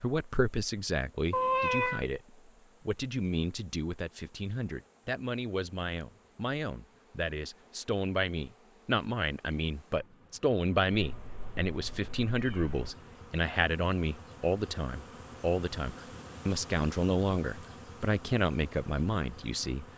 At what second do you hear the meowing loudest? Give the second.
2 s.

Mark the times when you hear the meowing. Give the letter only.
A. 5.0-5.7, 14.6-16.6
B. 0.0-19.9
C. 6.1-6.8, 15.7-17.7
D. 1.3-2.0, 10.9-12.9
D.